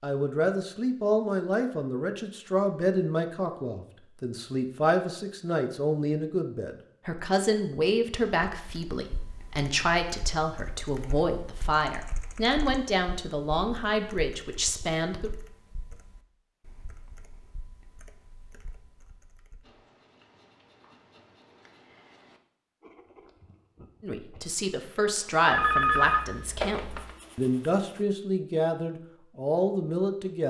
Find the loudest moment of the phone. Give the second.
26 s.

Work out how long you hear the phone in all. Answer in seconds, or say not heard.
2 s.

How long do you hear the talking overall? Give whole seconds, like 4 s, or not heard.
22 s.